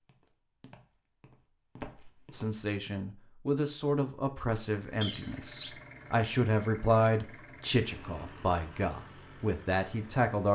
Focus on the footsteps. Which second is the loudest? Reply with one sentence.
The volume of the footsteps peaks at 2 seconds.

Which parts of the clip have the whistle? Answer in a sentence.
The whistle can be heard from 5.0 to 5.7 s.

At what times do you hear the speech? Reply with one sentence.
You can hear the speech from 2.3 to 10.5 s.